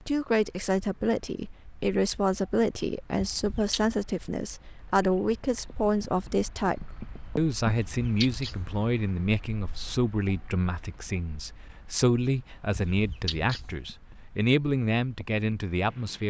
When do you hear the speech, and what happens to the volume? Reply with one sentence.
The speech can be heard from 0.1 to 16.2 s, at a steady volume.